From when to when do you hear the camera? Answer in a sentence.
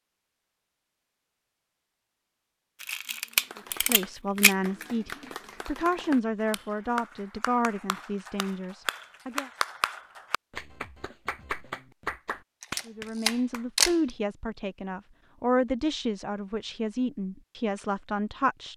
The camera can be heard from 2.8 to 4.5 s and from 12.6 to 13.9 s.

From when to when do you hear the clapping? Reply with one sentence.
The clapping can be heard from 3.4 to 13.8 s.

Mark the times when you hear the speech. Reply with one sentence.
The speech can be heard from 3.5 to 9.5 s and from 12.8 to 18.7 s.